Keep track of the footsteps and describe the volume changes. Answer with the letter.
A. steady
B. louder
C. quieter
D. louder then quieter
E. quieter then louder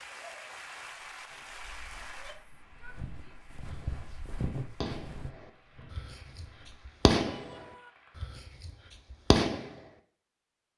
D.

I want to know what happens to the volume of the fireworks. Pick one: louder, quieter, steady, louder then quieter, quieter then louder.
louder.